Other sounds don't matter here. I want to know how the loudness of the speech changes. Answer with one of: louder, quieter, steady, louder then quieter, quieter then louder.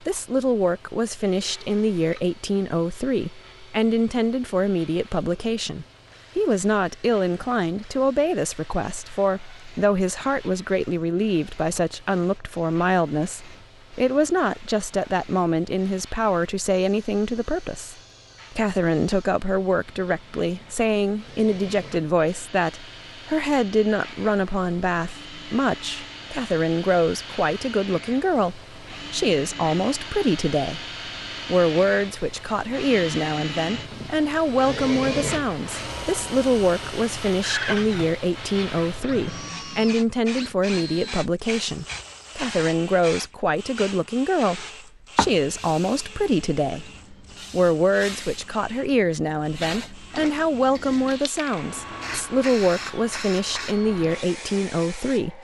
steady.